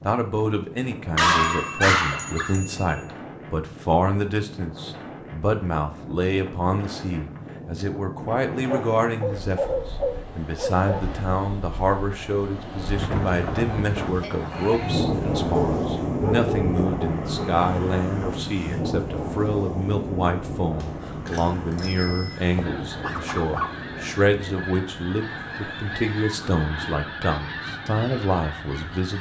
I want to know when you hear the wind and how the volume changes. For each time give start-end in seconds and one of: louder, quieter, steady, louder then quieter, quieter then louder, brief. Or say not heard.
0.0-29.1 louder then quieter.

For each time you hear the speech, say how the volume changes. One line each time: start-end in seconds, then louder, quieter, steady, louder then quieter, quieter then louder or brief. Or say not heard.
0.1-29.1 steady.